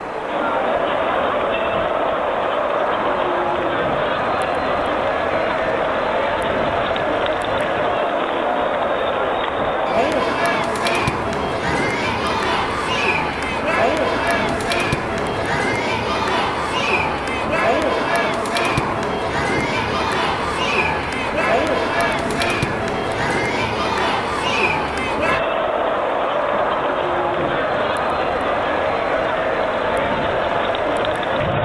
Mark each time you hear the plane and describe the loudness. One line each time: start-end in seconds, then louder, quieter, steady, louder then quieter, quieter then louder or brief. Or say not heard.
0.0-31.6 steady.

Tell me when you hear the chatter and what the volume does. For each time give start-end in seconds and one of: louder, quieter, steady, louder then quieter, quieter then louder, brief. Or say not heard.
0.0-31.6 steady.